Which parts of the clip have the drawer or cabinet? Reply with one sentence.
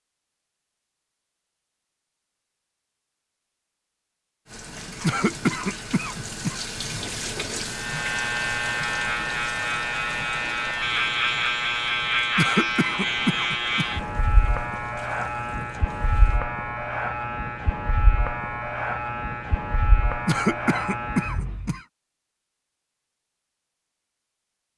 You can hear the drawer or cabinet from 7.0 to 7.8 s.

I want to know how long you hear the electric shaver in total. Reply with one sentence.
You can hear the electric shaver for 14 seconds altogether.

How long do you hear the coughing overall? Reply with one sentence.
The coughing can be heard for 5 seconds in total.